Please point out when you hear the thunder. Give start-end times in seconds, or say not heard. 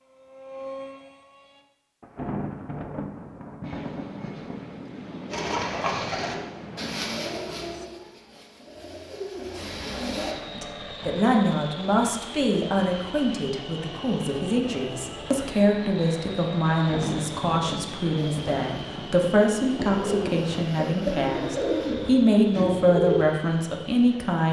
2.0-4.9, 16.8-20.5.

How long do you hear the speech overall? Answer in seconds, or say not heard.
14 s.